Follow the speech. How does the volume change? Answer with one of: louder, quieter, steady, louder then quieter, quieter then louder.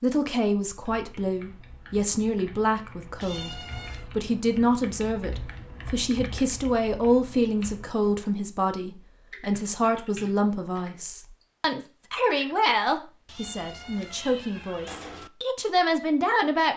steady.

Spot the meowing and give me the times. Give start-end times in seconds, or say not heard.
3.2-4.1, 13.2-15.3.